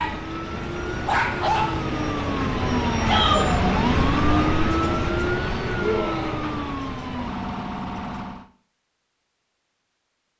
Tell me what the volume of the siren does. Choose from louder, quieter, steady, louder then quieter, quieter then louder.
louder then quieter.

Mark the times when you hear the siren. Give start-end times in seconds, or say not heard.
0.0-8.5.